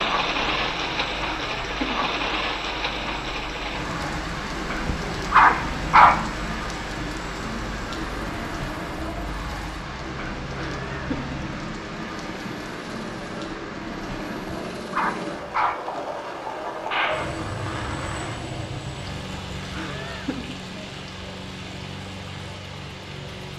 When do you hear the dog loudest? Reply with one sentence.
The volume of the dog peaks at 6 seconds.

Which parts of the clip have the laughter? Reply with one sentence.
The laughter can be heard from 1.2 to 2.0 s, from 10.6 to 11.3 s and from 19.7 to 20.6 s.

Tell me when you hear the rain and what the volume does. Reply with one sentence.
You can hear the rain from 0.0 to 23.5 s, getting quieter.